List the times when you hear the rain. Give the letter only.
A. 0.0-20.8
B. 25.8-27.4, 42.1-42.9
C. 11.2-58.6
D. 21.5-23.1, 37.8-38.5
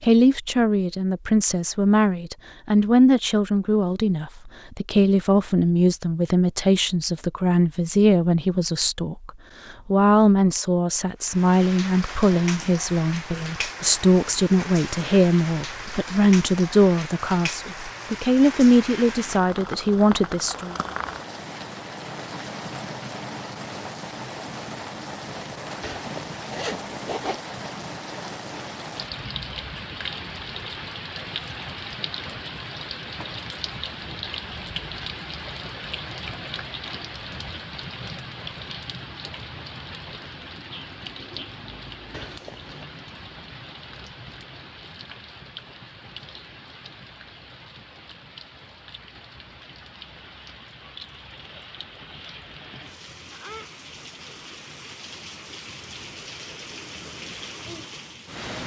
C.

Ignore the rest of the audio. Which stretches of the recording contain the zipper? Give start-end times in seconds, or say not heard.
25.8-27.4, 42.1-42.9.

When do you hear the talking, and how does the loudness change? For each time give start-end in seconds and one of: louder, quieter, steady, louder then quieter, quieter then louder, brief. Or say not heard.
0.0-20.8 steady.